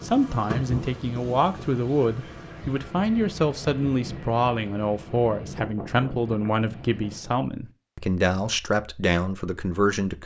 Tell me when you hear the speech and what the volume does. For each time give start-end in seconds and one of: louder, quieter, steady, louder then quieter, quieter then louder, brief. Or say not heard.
0.0-10.2 steady.